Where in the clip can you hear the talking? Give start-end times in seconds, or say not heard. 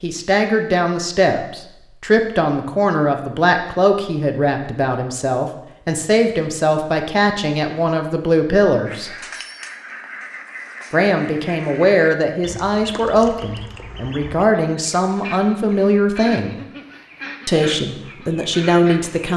0.0-9.1, 10.9-16.6, 17.4-19.3.